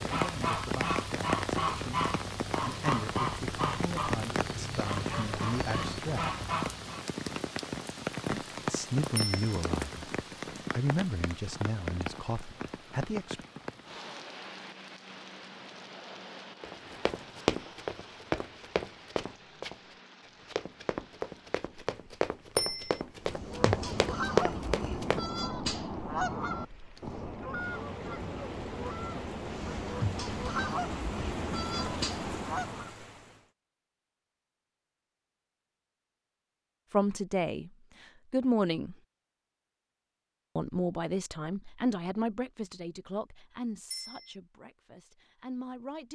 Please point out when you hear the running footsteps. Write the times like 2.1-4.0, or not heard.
16.6-25.2.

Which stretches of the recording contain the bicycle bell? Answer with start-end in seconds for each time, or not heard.
9.2-9.6, 22.6-23.0, 43.9-44.4.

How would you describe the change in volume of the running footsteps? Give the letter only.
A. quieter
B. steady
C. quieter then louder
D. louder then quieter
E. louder
C.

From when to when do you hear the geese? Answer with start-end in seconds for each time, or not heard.
0.0-7.0, 23.2-33.0.